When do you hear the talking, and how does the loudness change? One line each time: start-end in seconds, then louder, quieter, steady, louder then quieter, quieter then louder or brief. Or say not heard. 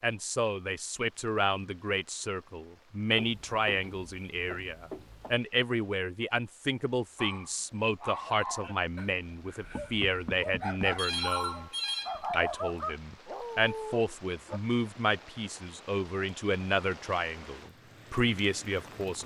0.0-19.2 steady.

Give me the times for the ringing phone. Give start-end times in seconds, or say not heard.
10.9-12.4.